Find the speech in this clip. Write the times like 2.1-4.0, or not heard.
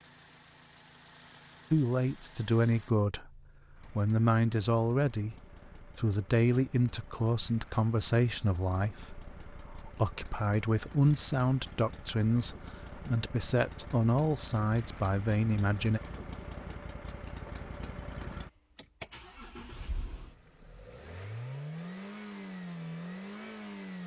1.7-16.0.